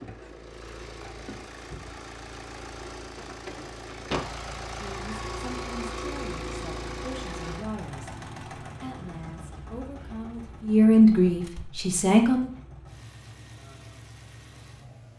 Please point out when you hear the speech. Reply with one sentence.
The speech can be heard from 4.7 to 12.5 s.